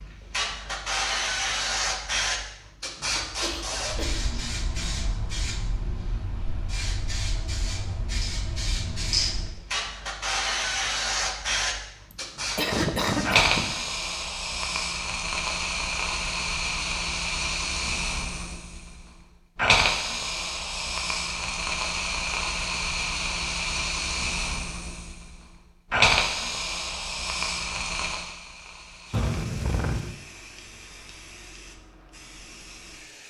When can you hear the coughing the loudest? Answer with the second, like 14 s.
13 s.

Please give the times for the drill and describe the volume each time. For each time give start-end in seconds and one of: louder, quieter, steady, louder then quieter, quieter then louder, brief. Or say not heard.
not heard.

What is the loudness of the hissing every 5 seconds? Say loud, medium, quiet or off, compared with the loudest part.
loud, medium, loud, loud, loud, loud, quiet.